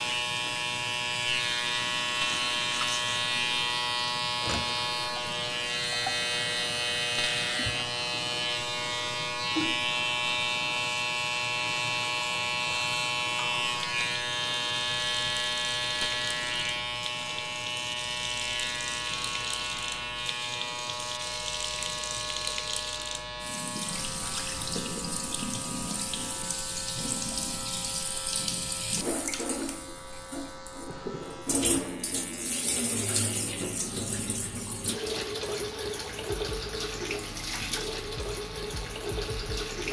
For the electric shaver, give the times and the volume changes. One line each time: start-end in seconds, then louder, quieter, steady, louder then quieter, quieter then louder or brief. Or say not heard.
0.0-39.8 quieter.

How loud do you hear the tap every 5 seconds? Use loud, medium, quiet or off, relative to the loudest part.
medium, medium, medium, medium, loud, loud, loud, loud.